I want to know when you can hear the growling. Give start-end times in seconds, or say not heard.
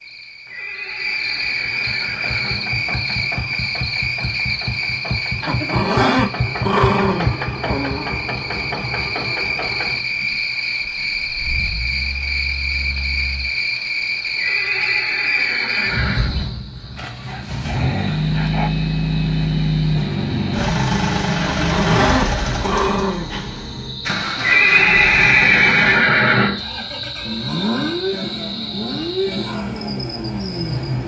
5.4-8.1, 17.4-18.7, 21.4-23.3.